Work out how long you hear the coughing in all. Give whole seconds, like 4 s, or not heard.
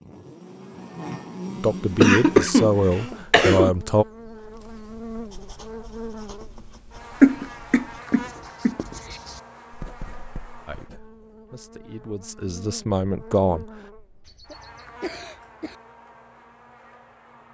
5 s.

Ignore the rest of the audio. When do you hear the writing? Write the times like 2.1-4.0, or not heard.
4.3-11.4.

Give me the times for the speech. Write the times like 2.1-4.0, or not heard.
1.6-4.0, 10.7-13.7.